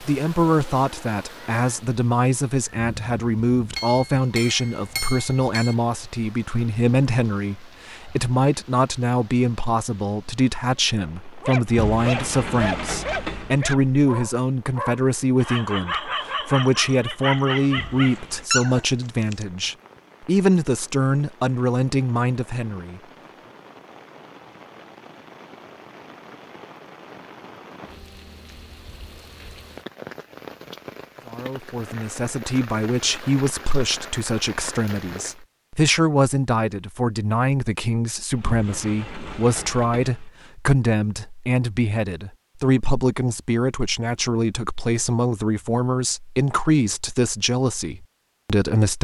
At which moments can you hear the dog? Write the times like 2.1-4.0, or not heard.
11.4-19.4.